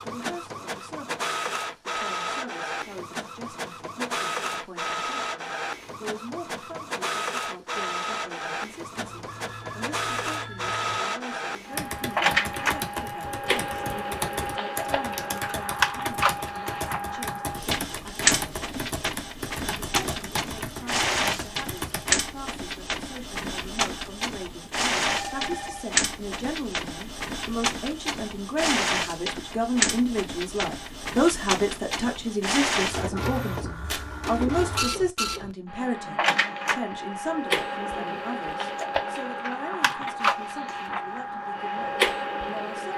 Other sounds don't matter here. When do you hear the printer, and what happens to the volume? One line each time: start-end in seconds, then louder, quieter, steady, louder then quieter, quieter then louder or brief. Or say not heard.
0.0-42.9 steady.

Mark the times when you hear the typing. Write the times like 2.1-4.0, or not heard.
11.7-22.1.